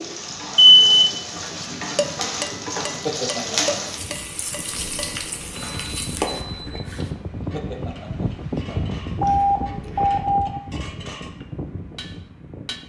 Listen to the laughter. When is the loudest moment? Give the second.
3 s.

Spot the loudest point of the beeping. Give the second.
1 s.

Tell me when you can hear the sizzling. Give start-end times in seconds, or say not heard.
0.0-6.4.